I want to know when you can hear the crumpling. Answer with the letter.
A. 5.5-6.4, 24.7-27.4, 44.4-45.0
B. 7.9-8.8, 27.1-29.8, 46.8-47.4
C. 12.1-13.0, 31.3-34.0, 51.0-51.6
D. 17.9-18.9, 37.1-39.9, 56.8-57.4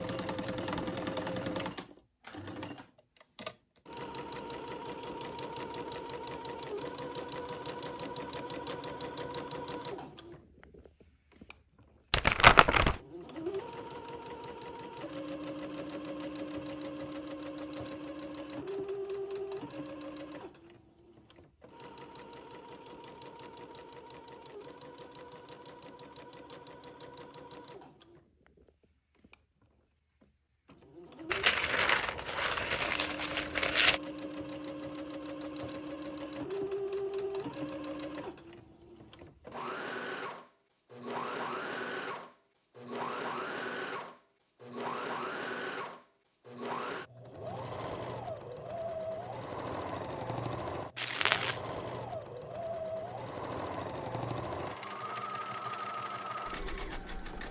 C.